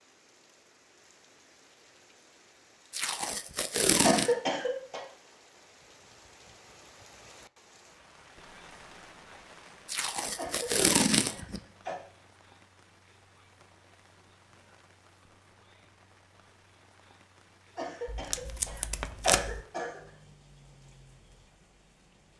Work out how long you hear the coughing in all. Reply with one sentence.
The coughing can be heard for 5 seconds in total.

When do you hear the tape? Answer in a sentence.
You can hear the tape from 2.9 to 4.3 s, from 9.8 to 11.6 s and from 18.1 to 19.6 s.